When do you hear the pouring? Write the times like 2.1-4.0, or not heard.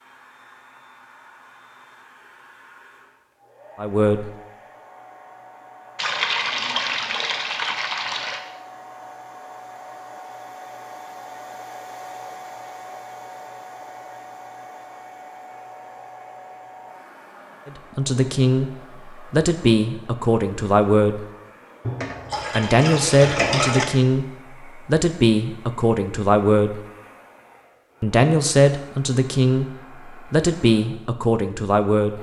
6.0-8.4, 21.8-23.9.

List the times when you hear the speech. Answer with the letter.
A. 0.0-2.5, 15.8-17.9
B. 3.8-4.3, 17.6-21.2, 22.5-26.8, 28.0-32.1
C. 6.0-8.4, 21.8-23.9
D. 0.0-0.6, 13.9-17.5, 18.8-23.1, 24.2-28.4
B.